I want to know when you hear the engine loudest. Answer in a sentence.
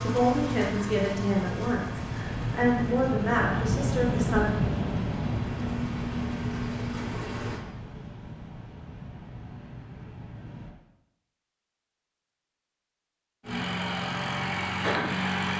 The volume of the engine peaks at 15 seconds.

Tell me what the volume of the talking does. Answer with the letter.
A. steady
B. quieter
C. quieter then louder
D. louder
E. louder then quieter
C.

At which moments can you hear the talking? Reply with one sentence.
The talking can be heard from 0.0 to 4.5 s.